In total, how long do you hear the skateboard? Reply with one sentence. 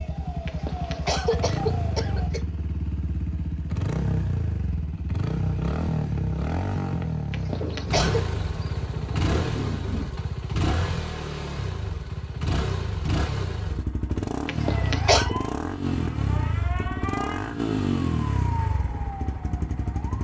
You can't hear the skateboard here.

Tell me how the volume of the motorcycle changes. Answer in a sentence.
The volume of the motorcycle stays about the same.